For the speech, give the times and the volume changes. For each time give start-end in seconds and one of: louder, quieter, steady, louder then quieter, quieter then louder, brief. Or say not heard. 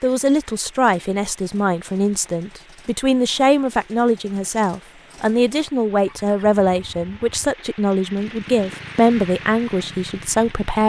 0.0-10.8 steady.